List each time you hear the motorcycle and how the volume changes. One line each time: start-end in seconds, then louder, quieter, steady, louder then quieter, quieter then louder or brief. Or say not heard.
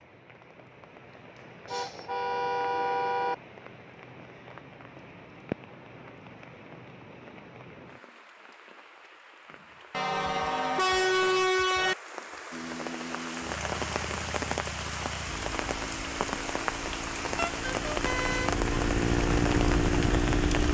12.5-20.7 louder.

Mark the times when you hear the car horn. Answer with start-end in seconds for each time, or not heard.
1.6-3.4, 9.9-11.9, 17.4-18.6.